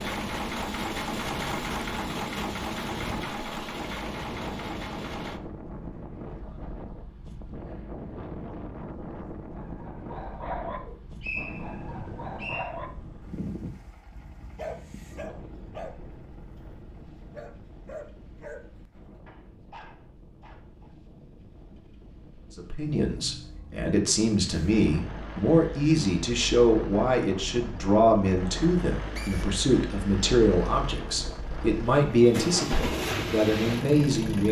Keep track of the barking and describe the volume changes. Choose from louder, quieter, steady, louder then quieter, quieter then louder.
quieter.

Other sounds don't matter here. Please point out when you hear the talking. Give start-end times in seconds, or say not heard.
22.6-34.4.